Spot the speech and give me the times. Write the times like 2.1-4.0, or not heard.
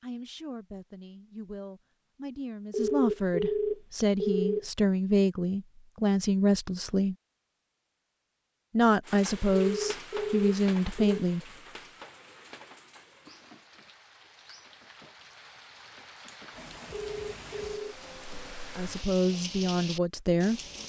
0.0-7.2, 8.7-11.4, 18.8-20.6.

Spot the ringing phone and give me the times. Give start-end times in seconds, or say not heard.
2.7-4.7, 9.7-11.2, 16.9-17.9.